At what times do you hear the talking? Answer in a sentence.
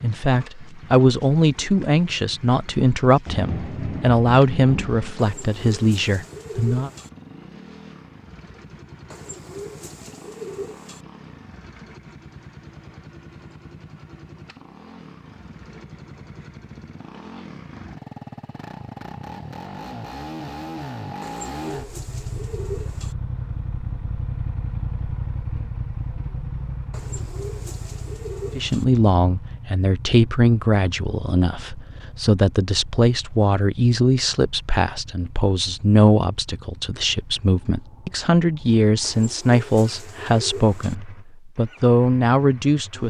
The talking can be heard from 0.0 to 6.9 s and from 28.6 to 43.0 s.